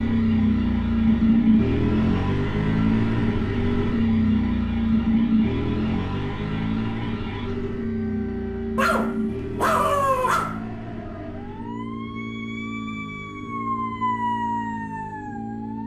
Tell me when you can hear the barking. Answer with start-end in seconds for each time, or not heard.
8.8-10.6.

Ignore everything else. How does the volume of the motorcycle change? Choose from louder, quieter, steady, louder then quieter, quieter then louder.
quieter.